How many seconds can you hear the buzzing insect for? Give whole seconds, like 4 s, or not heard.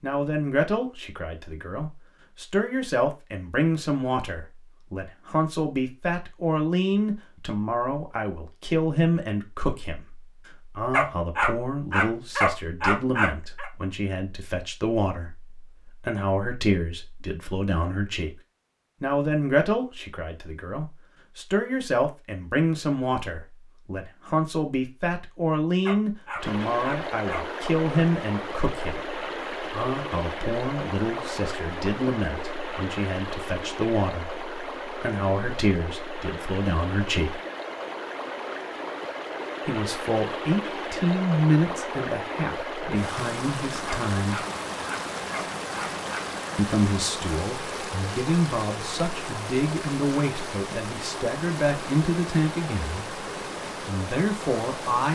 not heard.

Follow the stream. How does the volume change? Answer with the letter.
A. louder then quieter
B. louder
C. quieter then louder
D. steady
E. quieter
D.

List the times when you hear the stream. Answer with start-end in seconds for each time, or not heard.
26.4-55.0.